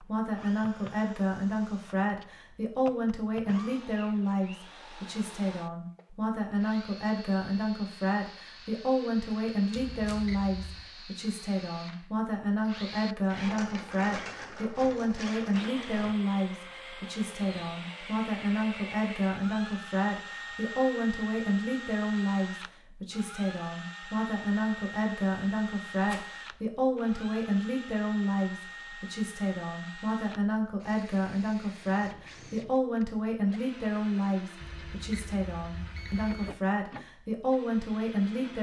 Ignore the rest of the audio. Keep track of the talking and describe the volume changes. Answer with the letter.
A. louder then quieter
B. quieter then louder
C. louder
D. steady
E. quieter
D.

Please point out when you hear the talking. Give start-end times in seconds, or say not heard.
0.0-38.5.